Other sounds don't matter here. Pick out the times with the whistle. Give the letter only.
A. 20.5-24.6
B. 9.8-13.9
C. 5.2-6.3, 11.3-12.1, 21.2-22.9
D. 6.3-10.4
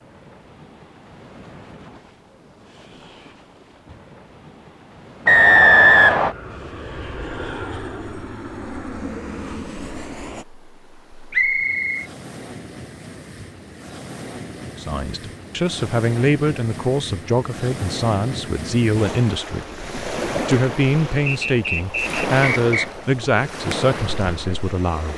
C.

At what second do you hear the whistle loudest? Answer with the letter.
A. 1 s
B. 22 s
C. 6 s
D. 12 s
C.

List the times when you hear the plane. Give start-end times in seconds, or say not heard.
6.3-10.4.